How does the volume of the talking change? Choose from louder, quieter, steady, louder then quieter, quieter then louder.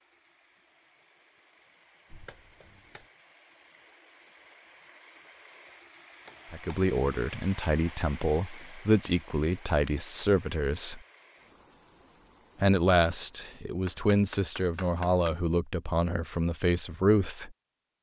steady.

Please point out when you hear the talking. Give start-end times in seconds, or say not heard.
6.5-11.0, 12.6-17.5.